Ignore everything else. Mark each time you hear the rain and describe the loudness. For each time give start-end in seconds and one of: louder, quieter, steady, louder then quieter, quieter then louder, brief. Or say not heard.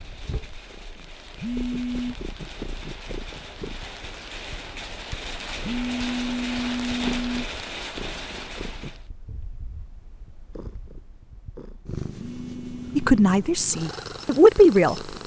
0.0-9.1 louder.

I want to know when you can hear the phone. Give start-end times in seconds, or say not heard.
1.4-2.1, 5.6-7.5, 12.2-13.1.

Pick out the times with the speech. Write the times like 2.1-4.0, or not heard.
12.9-14.9.